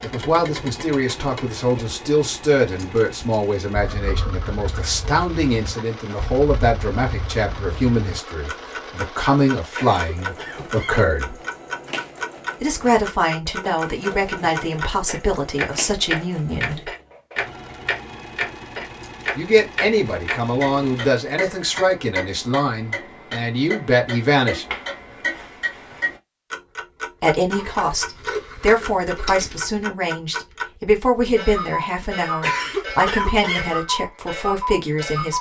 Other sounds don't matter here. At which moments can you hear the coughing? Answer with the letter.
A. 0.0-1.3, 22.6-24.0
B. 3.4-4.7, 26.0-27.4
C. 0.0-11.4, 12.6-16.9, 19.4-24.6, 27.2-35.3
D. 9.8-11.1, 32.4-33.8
D.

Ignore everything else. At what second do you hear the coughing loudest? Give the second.
33 s.